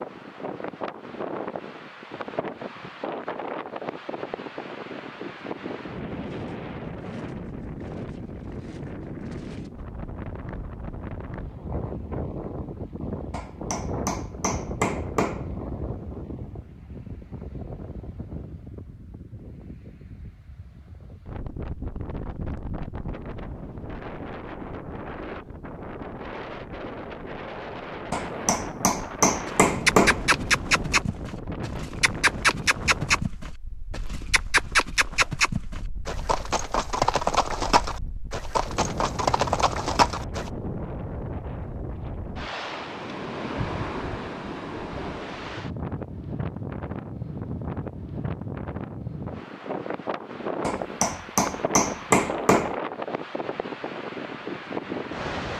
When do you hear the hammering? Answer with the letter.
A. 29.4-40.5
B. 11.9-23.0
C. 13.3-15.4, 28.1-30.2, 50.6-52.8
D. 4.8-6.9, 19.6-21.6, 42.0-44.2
C.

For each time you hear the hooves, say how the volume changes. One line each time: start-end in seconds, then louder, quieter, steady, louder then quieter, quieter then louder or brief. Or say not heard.
29.4-40.5 steady.